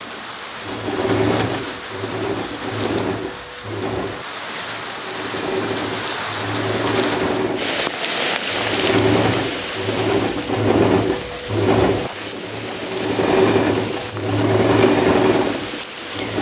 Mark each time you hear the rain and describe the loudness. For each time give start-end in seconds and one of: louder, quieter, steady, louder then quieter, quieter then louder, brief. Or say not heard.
0.0-16.3 louder then quieter.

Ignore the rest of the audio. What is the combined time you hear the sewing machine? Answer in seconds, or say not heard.
16 s.